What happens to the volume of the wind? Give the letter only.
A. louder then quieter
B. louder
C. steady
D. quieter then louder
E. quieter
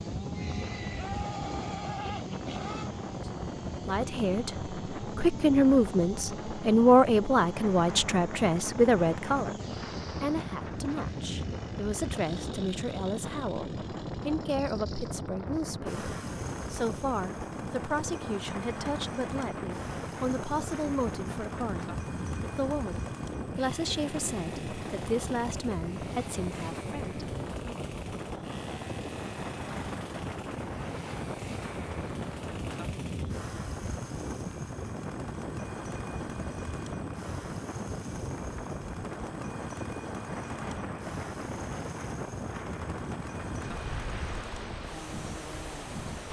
C.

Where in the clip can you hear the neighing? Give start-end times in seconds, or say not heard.
0.3-2.9.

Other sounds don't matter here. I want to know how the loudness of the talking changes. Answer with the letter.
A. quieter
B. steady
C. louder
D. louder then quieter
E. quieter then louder
A.